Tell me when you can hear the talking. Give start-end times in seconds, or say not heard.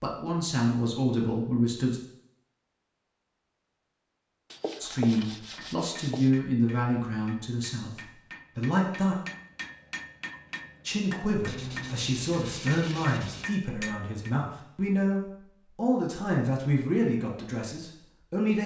0.0-2.0, 4.8-9.2, 10.8-18.6.